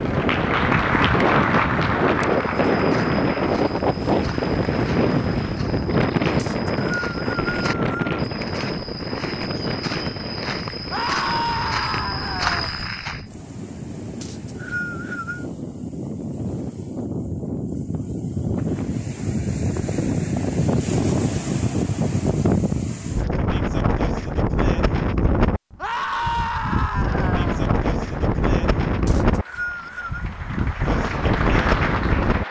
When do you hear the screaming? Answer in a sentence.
You can hear the screaming from 10.9 to 12.6 s and from 25.8 to 27.6 s.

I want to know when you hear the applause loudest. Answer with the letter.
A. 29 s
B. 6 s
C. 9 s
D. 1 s
D.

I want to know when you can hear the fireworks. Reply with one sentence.
The fireworks can't be heard in this clip.